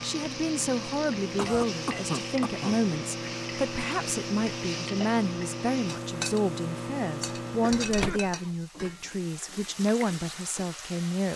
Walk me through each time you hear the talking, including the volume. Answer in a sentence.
The talking can be heard from 0.0 to 11.3 s, at a steady volume.